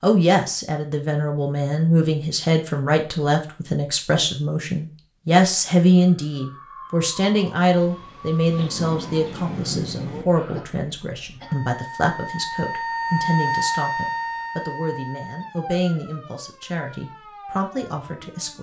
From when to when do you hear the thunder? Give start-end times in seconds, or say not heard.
8.4-10.2.